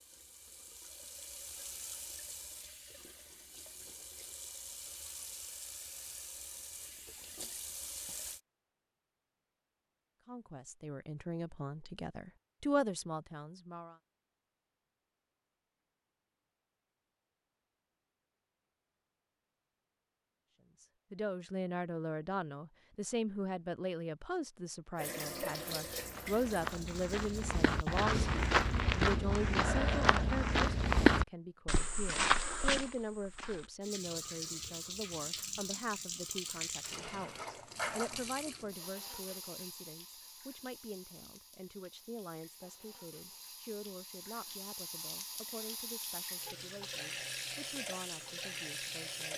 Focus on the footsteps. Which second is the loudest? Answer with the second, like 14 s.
31 s.